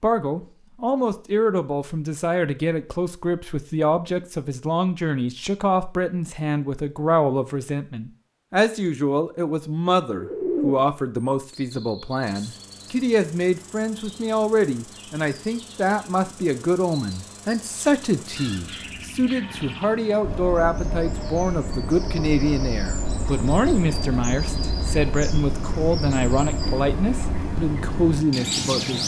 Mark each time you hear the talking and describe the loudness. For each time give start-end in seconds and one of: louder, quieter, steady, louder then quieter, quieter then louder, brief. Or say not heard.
0.0-29.0 steady.